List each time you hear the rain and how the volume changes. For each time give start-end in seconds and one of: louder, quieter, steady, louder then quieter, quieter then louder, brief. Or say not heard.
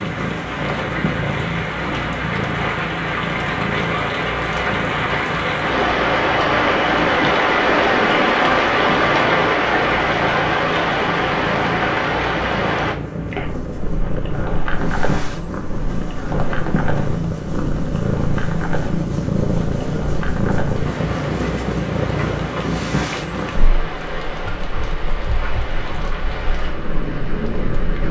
0.0-28.0 louder then quieter.